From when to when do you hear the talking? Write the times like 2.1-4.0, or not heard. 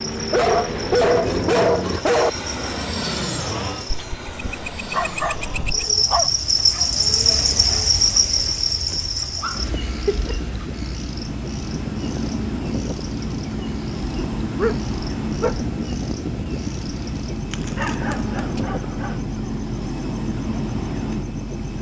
not heard.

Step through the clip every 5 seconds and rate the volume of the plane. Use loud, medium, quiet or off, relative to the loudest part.
loud, medium, loud, loud, loud.